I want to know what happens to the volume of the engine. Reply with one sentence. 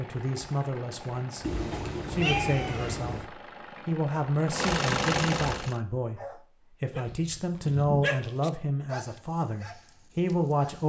The loudness of the engine goes up.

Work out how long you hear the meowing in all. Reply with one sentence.
The meowing can be heard for 3 seconds in total.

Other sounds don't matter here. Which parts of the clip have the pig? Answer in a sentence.
The pig can't be heard in this clip.